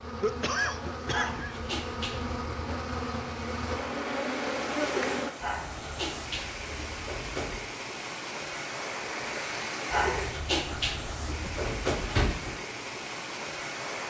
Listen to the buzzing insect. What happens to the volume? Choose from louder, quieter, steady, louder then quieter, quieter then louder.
louder.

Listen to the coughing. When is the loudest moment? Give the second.
1 s.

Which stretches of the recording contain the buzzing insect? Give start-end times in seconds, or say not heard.
0.0-5.3.